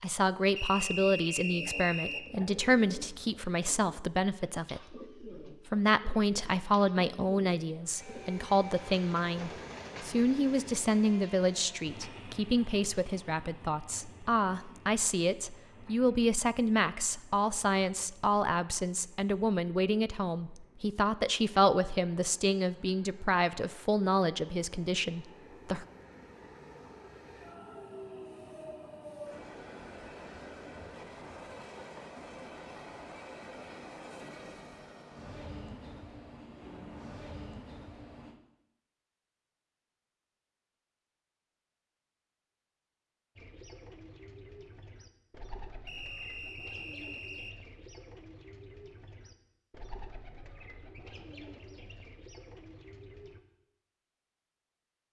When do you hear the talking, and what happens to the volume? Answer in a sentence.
The talking can be heard from 0.0 to 25.9 s, at a steady volume.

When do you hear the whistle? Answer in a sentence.
You can hear the whistle from 0.6 to 2.2 s and from 45.9 to 47.5 s.